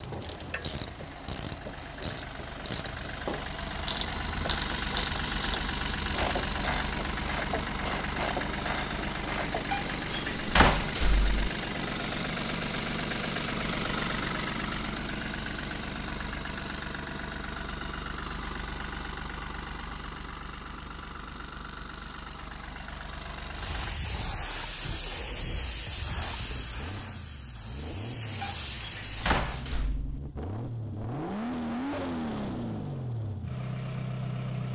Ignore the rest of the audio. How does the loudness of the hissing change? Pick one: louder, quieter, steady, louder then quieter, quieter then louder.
quieter then louder.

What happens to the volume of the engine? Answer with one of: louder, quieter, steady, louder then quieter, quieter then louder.
quieter then louder.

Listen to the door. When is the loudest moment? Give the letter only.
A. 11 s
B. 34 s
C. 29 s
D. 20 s
A.